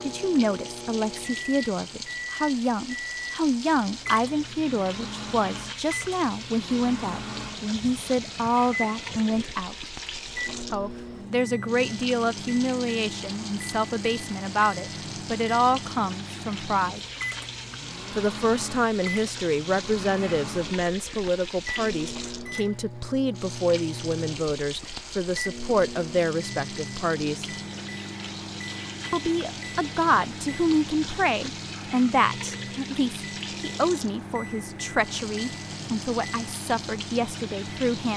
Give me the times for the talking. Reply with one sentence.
The talking can be heard from 0.0 to 9.9 s, from 10.7 to 17.0 s, from 18.1 to 27.4 s and from 29.1 to 38.1 s.